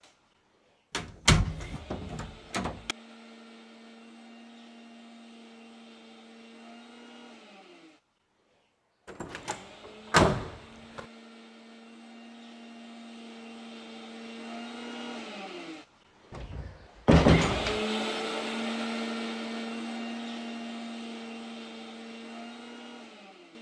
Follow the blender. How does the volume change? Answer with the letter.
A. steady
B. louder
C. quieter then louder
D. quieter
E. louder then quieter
B.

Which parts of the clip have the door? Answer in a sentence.
The door can be heard from 0.9 to 3.0 s, from 9.1 to 11.0 s and from 16.3 to 17.8 s.